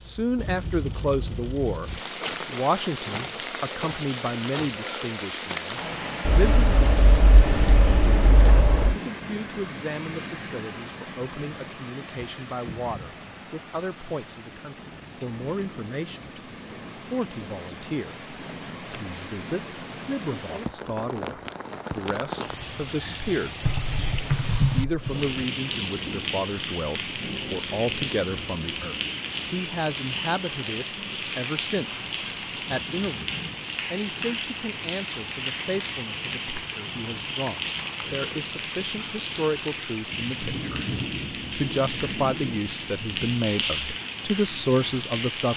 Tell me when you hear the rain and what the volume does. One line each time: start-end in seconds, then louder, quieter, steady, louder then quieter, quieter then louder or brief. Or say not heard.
0.0-45.5 quieter then louder.